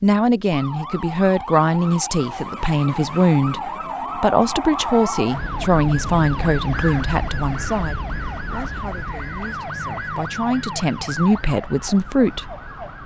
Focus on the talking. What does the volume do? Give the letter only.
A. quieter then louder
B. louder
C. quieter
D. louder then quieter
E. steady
A.